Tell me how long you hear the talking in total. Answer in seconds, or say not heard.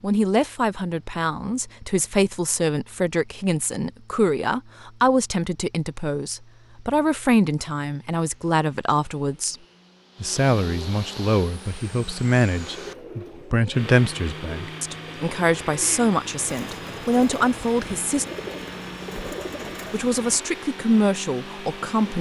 20 s.